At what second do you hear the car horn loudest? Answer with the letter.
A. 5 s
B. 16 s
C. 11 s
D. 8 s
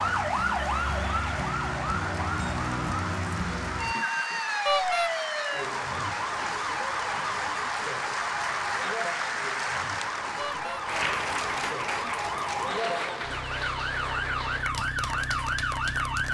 A.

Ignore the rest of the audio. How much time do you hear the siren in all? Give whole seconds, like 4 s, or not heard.
16 s.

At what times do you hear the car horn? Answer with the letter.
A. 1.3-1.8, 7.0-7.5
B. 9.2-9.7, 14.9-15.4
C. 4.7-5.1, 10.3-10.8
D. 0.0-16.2
C.